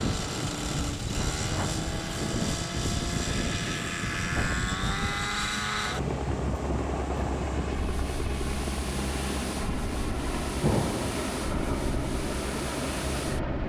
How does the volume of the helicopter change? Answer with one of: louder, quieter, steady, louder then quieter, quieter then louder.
steady.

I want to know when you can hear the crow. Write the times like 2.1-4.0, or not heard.
not heard.